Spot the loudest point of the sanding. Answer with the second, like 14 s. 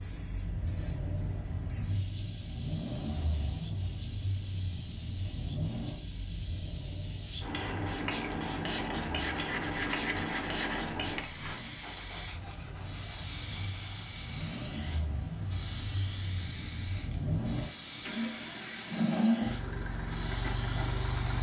10 s.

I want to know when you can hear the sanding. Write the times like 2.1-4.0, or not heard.
9.2-14.6.